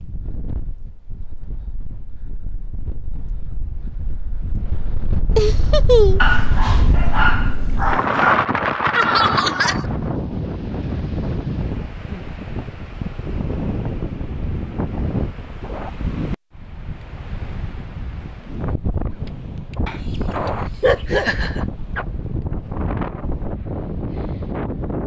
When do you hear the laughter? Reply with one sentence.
You can hear the laughter from 5.3 to 6.3 s, from 8.9 to 9.8 s and from 21.1 to 21.6 s.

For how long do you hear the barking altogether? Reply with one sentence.
You can hear the barking for 4 seconds altogether.